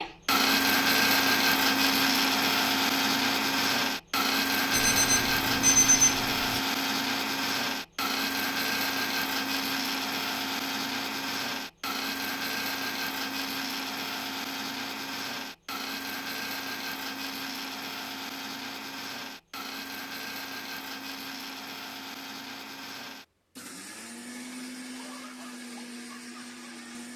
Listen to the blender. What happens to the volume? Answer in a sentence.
The volume of the blender goes down.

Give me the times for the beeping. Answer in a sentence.
You can hear the beeping from 4.7 to 6.6 s.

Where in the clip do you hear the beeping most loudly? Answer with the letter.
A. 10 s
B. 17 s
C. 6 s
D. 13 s
C.